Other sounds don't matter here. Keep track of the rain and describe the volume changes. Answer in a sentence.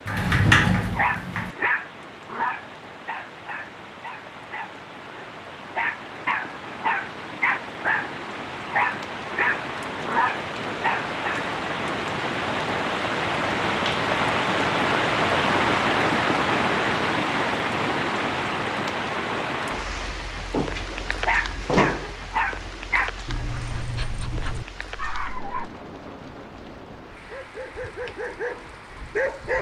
The volume of the rain goes up, then down.